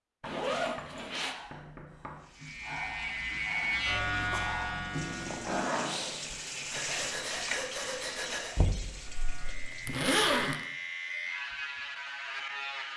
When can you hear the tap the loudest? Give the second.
7 s.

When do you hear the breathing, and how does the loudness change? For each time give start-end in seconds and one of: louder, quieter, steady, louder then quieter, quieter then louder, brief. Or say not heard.
1.1-8.6 louder.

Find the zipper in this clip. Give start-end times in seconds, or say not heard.
0.2-1.4, 4.9-6.0, 9.1-10.6.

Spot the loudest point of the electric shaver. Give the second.
4 s.